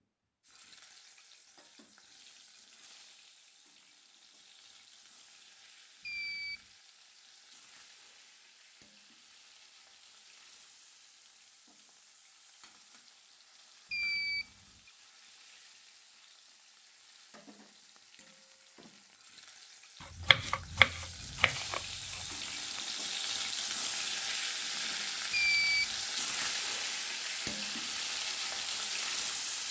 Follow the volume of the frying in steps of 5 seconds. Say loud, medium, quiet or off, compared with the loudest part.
quiet, quiet, quiet, quiet, loud, loud.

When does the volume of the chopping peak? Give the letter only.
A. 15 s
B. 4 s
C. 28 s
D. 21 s
D.